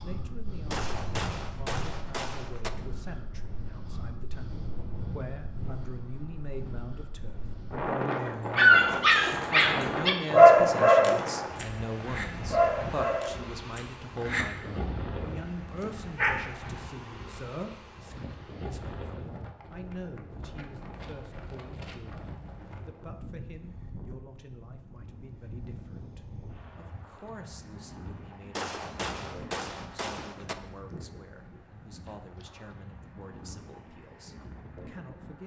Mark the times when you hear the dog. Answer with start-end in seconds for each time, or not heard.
8.6-16.5.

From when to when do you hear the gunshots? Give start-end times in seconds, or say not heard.
0.7-2.7, 28.6-30.6.